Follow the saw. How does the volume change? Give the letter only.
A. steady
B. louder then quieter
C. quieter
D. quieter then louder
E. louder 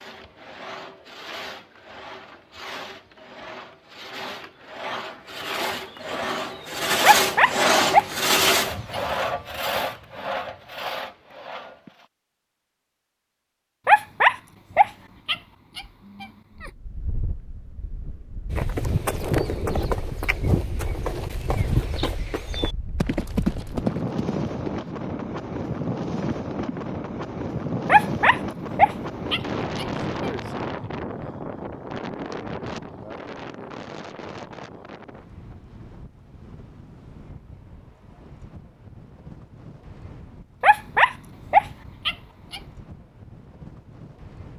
B.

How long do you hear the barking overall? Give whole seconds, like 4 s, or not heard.
9 s.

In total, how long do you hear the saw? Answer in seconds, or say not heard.
12 s.